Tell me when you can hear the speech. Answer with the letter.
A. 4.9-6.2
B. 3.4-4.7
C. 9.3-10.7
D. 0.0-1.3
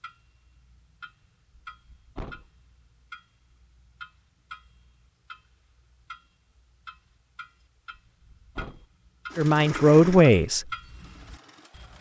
C.